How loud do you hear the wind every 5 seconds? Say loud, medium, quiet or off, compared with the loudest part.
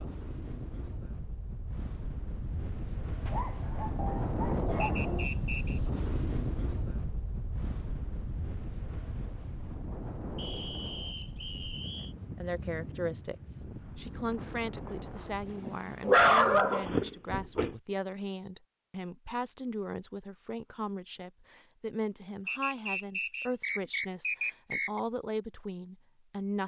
loud, loud, medium, medium, off, off.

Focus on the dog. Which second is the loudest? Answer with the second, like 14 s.
16 s.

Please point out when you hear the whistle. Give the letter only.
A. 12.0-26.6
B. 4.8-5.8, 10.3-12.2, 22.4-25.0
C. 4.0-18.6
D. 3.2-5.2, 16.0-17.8
B.